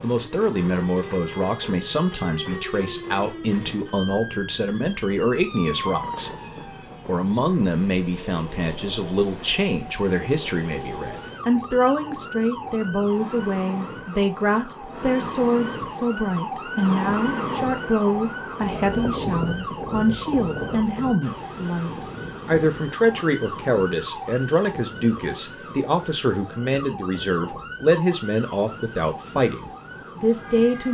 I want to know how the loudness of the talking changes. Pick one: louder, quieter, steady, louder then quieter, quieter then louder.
steady.